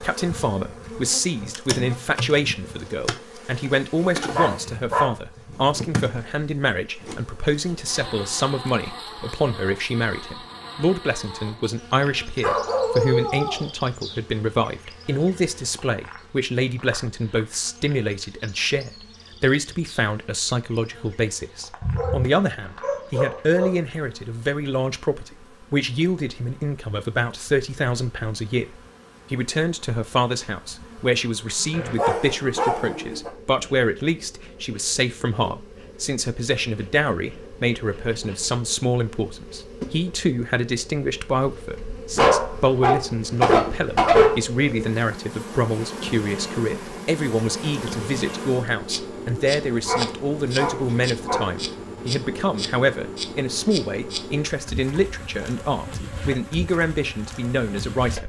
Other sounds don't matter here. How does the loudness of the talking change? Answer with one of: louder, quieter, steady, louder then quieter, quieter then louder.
steady.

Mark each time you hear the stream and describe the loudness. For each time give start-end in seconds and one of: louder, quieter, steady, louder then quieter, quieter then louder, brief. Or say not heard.
not heard.